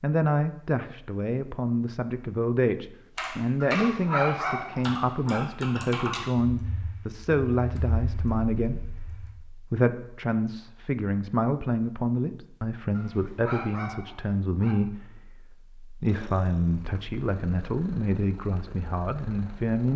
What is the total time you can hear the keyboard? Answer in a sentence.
The keyboard can be heard for 6 seconds in total.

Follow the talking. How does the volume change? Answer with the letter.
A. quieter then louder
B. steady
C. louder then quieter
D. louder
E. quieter
B.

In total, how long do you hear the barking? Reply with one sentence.
The barking can be heard for 4 seconds in total.